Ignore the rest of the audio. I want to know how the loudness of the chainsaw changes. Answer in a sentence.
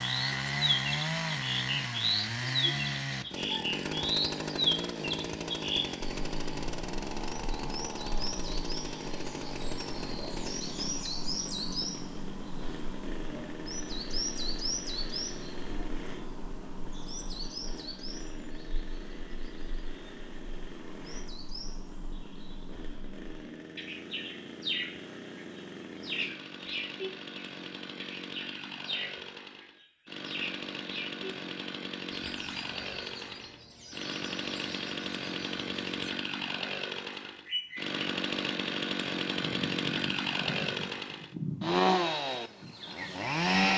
The volume of the chainsaw goes down, then up.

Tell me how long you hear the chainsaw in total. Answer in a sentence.
You can hear the chainsaw for 44 seconds altogether.